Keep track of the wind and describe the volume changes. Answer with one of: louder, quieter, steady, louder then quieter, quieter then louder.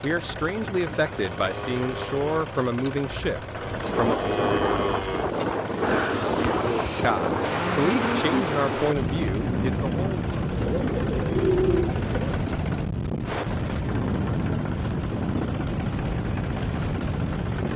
steady.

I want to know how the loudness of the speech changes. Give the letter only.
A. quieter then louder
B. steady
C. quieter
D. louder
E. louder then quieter
B.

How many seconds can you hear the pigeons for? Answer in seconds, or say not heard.
2 s.